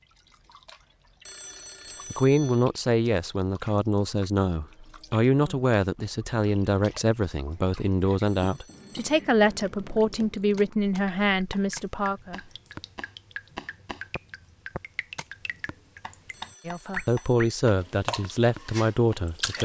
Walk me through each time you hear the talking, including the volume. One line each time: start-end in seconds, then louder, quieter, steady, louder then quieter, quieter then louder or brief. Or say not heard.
2.1-12.4 steady
16.6-19.6 brief.